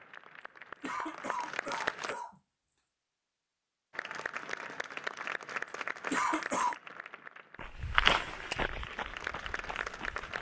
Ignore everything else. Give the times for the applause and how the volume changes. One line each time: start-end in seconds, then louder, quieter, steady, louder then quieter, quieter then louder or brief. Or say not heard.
0.0-2.1 brief
3.9-10.3 quieter then louder.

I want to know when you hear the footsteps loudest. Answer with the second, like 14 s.
8 s.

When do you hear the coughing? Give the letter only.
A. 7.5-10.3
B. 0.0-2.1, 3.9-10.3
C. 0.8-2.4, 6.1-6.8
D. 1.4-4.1
C.